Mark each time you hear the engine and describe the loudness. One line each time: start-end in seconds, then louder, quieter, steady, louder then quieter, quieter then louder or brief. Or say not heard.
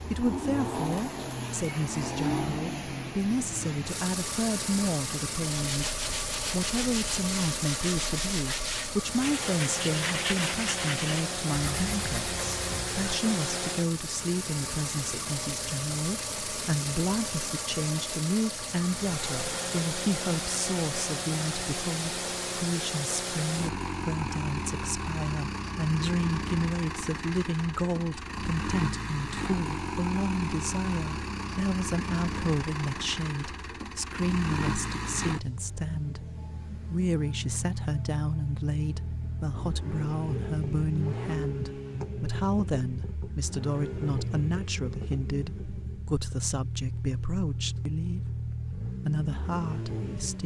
0.0-50.4 steady.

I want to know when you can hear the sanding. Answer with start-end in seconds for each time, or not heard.
5.5-13.2.